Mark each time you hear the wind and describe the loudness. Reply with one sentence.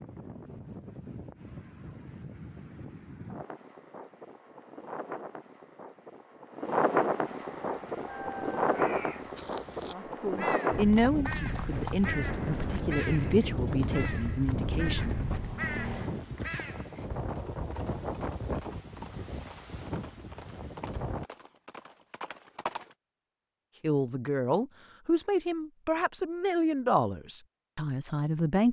The wind can be heard from 0.0 to 21.2 s, getting louder then quieter.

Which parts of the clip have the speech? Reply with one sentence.
The speech can be heard from 9.9 to 15.2 s and from 23.8 to 28.6 s.